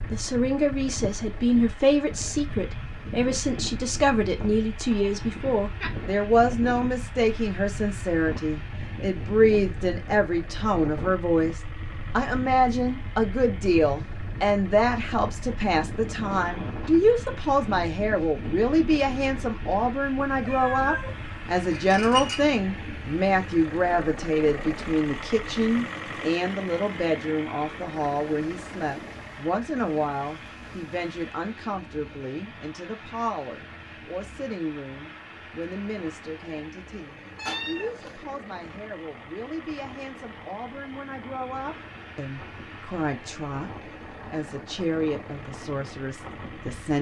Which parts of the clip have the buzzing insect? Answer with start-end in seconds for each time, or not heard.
not heard.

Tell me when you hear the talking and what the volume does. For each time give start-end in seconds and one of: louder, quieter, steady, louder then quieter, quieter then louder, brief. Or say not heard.
0.1-46.9 quieter.